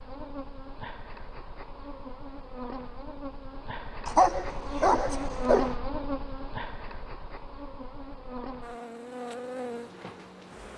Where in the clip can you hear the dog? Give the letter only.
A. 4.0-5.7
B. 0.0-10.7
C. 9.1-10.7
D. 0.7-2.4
A.